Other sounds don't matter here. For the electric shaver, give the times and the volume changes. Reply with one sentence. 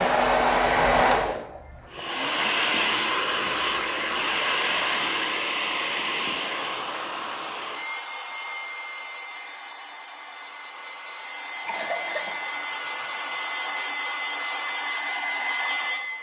The electric shaver can't be heard in this clip.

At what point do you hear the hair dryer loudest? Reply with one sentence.
The volume of the hair dryer peaks at 1 second.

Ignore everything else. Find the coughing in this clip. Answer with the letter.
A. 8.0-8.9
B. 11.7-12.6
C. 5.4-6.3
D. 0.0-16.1
B.